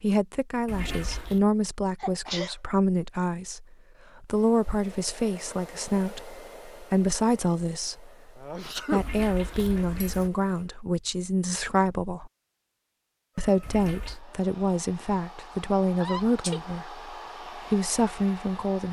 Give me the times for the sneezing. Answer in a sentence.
You can hear the sneezing from 2.0 to 2.5 s, from 8.3 to 9.0 s and from 16.0 to 16.6 s.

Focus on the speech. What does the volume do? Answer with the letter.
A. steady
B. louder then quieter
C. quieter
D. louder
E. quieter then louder
A.